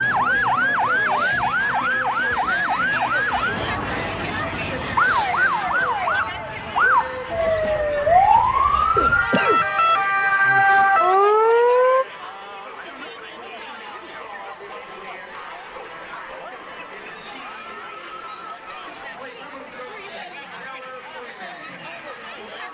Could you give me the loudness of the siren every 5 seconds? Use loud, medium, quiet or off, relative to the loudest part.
medium, loud, loud, off, off.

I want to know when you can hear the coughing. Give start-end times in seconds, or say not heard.
8.9-9.7.